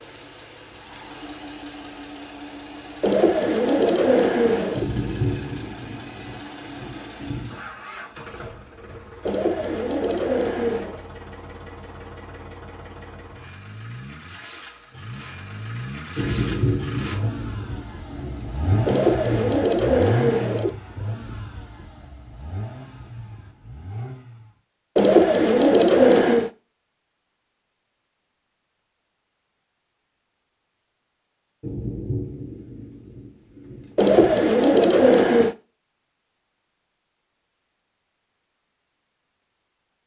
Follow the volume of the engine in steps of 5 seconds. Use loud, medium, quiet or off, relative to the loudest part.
medium, medium, medium, loud, loud, off, off, off.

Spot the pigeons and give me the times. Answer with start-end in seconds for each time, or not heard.
3.0-4.9, 9.2-11.0, 18.9-20.8, 24.9-26.5, 34.0-35.5.